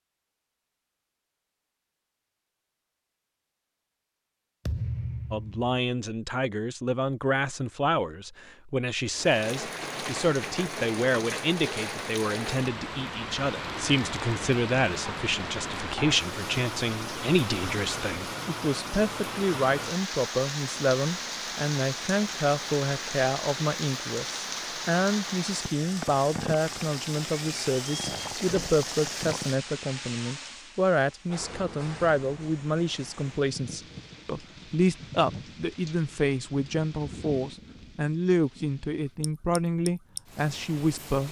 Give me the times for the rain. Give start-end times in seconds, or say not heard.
9.1-41.2.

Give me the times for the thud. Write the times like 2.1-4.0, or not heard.
4.7-5.7.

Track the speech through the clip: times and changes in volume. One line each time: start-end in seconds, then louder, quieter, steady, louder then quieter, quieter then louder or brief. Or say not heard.
5.3-41.2 steady.